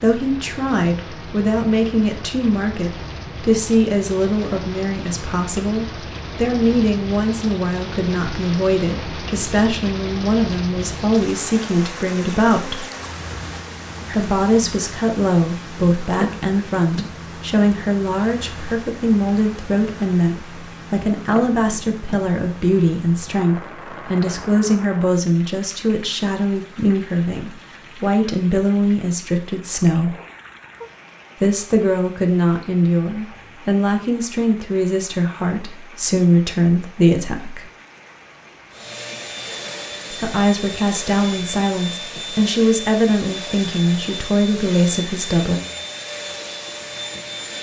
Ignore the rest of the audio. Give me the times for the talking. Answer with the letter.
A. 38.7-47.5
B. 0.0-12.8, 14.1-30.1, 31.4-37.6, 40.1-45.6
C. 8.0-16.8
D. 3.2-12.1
B.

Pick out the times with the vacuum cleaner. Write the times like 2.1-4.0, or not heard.
38.7-47.5.